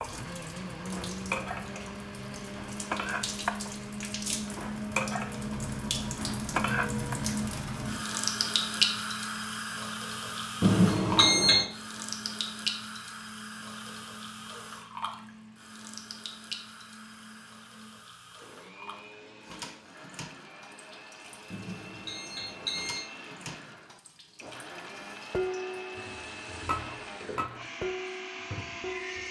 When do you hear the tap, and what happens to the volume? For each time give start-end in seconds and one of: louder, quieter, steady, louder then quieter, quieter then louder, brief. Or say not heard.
0.0-29.2 louder then quieter.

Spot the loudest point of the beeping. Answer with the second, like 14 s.
11 s.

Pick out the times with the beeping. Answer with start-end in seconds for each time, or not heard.
10.6-11.7, 21.5-23.1.